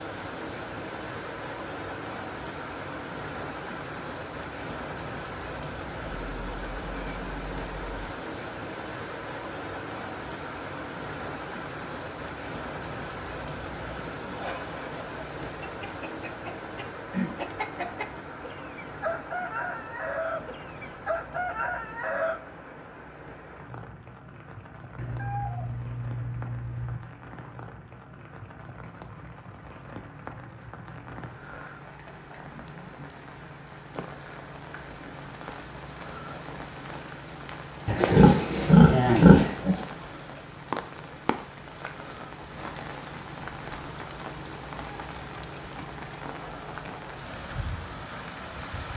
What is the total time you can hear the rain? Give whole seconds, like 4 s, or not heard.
49 s.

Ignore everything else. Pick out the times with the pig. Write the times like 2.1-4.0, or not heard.
37.9-39.8.